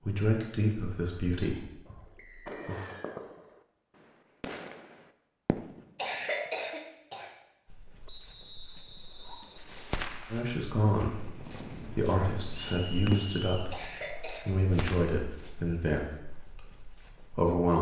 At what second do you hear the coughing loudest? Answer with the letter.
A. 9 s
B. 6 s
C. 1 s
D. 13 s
B.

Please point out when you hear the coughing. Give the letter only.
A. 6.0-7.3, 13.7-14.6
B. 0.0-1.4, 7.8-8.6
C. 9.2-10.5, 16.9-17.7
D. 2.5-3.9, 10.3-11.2
A.